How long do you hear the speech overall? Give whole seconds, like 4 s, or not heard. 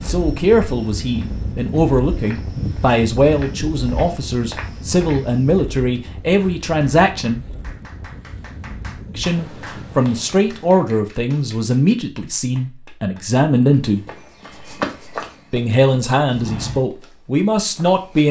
15 s.